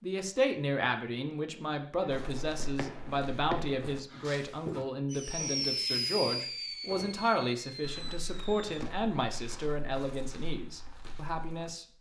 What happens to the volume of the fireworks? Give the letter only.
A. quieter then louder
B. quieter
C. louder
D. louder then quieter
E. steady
D.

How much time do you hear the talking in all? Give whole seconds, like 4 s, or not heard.
12 s.